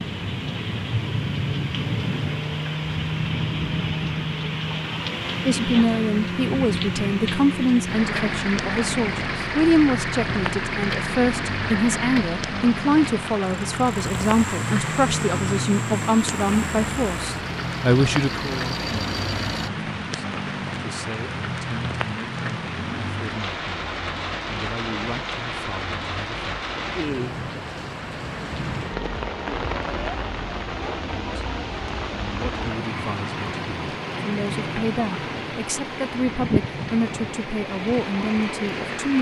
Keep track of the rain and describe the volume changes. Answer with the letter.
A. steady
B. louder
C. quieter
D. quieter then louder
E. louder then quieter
A.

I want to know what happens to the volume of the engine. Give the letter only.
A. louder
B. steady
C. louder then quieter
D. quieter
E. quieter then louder
B.